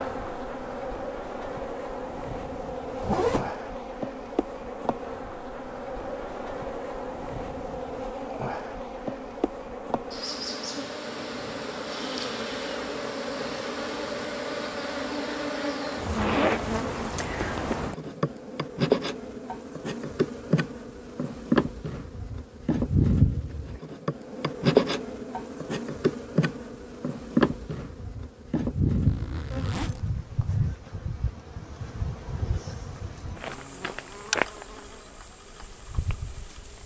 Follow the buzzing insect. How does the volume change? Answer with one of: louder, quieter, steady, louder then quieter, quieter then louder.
louder then quieter.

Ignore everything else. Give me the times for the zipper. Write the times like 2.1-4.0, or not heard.
3.0-3.5, 16.1-17.8, 29.1-30.6.